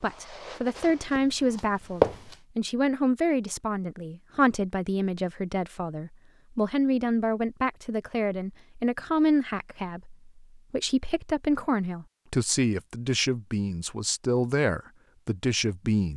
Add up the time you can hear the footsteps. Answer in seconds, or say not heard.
2 s.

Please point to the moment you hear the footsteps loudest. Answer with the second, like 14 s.
2 s.